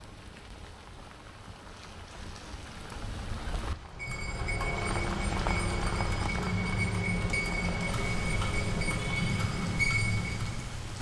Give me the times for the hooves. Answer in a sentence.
You can hear the hooves from 3.9 to 10.8 s.